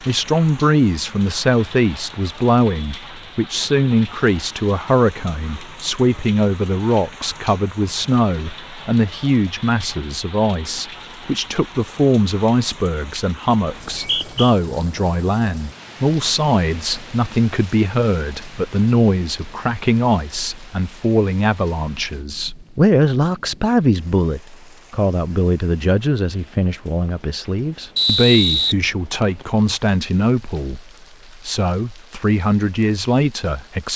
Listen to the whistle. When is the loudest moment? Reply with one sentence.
The volume of the whistle peaks at 28 seconds.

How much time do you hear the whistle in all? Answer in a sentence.
The whistle can be heard for 2 seconds in total.